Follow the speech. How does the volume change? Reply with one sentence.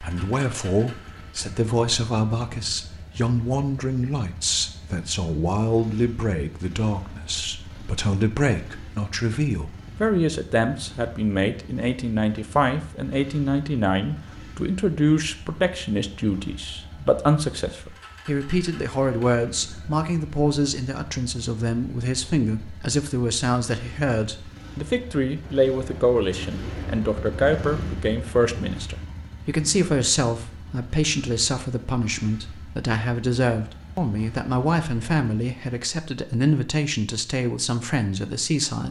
The volume of the speech stays about the same.